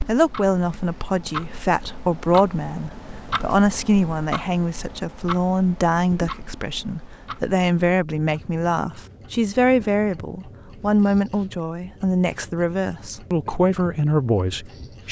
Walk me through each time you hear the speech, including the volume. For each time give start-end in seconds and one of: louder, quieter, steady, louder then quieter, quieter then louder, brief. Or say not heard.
0.1-15.0 steady.